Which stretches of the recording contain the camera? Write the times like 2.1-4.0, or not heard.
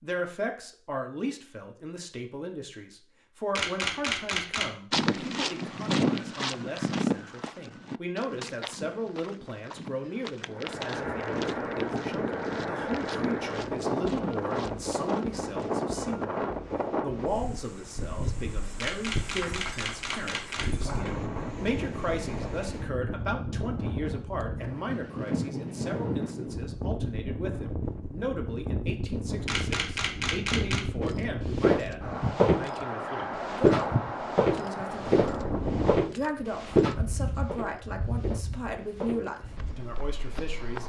3.5-4.7, 18.8-20.7, 29.4-30.9.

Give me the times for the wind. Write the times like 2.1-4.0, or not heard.
10.5-40.8.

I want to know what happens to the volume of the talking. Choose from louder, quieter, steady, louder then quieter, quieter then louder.
steady.